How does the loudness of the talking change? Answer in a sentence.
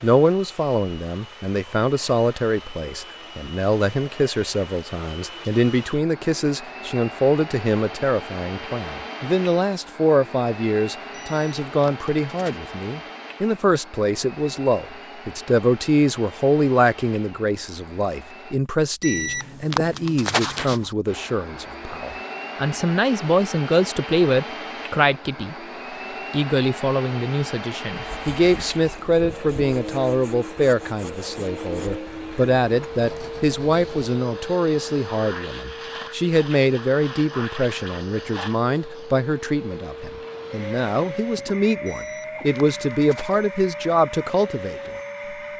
The volume of the talking stays about the same.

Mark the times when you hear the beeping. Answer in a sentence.
You can hear the beeping from 11.1 to 12.6 s, from 19.0 to 20.9 s and from 41.9 to 43.4 s.